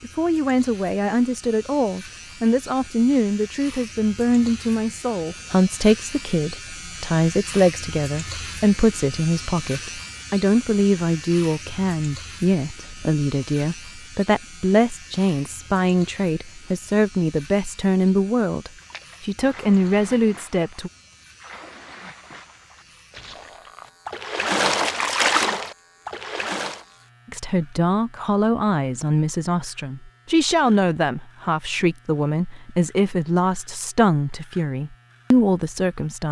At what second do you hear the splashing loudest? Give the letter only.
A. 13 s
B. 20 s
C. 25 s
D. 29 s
C.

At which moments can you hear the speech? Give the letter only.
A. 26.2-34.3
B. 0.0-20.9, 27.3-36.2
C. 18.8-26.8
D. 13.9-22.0
B.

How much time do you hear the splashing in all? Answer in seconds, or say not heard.
8 s.